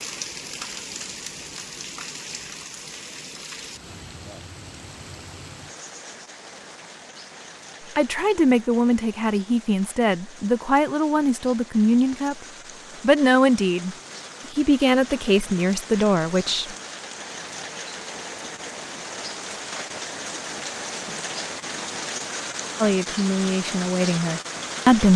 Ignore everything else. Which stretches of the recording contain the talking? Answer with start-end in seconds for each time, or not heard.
8.0-12.3, 13.0-16.8, 22.8-25.1.